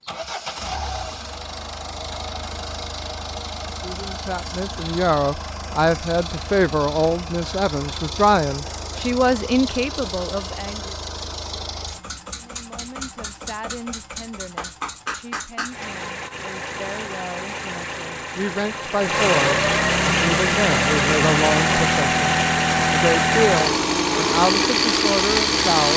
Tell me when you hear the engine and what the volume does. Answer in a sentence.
The engine can be heard from 0.0 to 25.9 s, getting louder.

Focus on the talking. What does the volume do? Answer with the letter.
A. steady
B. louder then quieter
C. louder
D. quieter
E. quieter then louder
E.